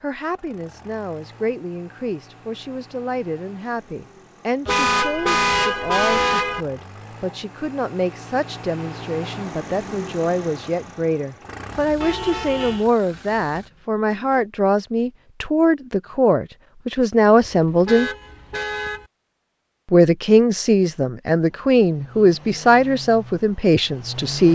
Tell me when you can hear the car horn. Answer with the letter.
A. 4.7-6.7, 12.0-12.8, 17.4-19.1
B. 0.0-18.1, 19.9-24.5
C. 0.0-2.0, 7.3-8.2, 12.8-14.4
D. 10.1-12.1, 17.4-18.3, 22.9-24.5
A.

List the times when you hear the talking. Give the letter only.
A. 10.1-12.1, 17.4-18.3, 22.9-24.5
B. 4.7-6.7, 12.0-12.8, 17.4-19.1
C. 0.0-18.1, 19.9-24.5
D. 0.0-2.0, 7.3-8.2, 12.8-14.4
C.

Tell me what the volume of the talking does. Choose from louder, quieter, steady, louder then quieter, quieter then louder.
louder.